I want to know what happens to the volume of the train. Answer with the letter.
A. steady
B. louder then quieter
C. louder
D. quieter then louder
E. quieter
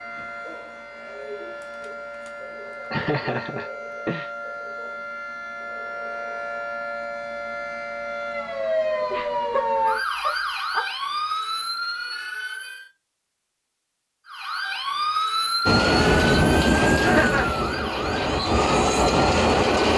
D.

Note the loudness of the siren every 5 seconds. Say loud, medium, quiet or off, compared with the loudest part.
medium, loud, loud, loud.